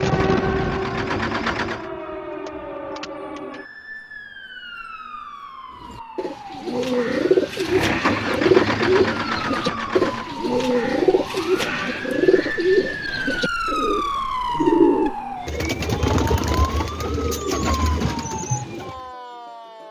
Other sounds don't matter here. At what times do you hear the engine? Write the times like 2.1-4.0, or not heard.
0.0-1.9, 7.7-10.3.